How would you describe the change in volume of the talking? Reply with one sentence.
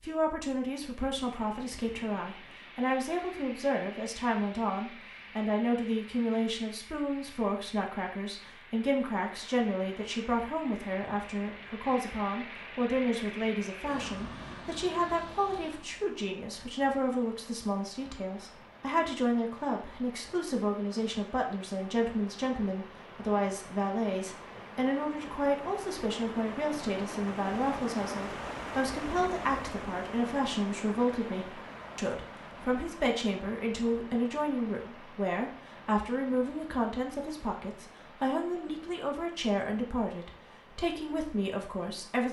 The loudness of the talking stays about the same.